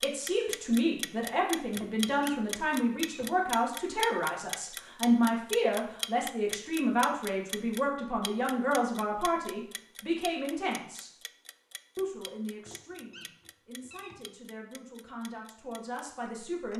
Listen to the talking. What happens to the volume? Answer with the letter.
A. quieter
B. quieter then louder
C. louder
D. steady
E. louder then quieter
A.